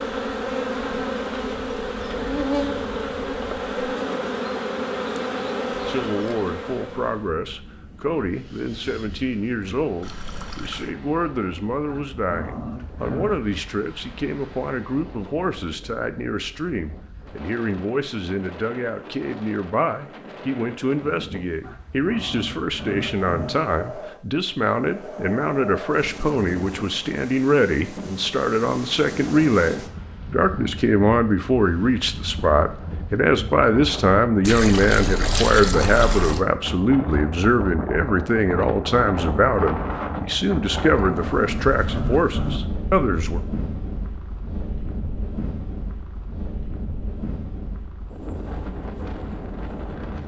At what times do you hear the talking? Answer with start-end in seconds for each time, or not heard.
5.8-43.4.